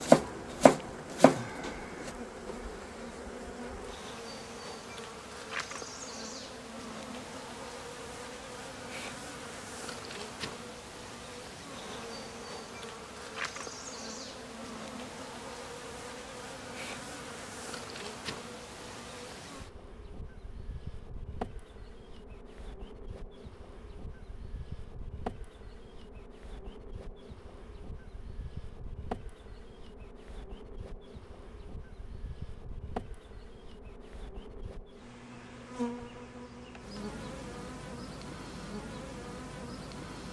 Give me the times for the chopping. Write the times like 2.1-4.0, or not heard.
0.0-2.1.